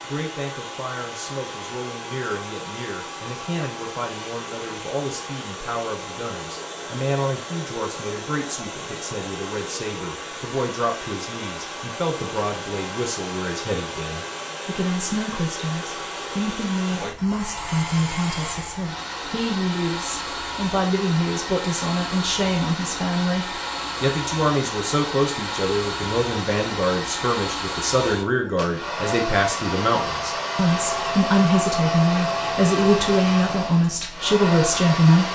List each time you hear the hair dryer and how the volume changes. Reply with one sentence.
You can hear the hair dryer from 0.0 to 35.3 s, getting louder.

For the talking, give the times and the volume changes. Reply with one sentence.
You can hear the talking from 0.1 to 35.2 s, getting louder.